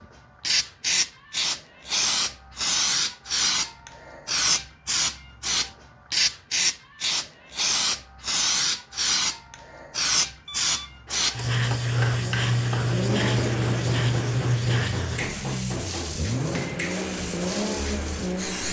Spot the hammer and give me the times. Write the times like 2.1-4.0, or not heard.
11.1-16.8.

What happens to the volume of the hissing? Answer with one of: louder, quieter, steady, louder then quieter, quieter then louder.
quieter.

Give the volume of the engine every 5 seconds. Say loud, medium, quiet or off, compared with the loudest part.
off, off, loud, loud.